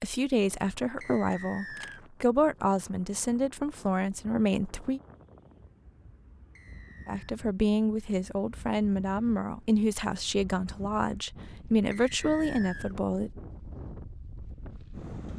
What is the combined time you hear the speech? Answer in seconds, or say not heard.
11 s.